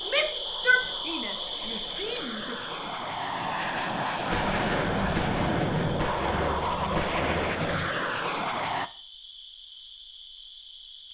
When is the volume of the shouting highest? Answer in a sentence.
The loudest moment of the shouting is at 1 second.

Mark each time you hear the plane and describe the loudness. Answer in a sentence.
The plane can be heard from 0.0 to 8.9 s, getting louder.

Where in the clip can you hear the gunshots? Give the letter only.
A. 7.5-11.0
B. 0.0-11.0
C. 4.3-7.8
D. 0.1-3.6
C.